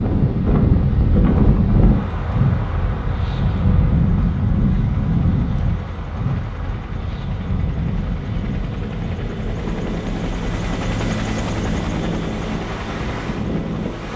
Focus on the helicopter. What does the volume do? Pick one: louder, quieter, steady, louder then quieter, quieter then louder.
louder.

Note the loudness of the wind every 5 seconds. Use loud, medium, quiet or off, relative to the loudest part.
loud, medium, medium.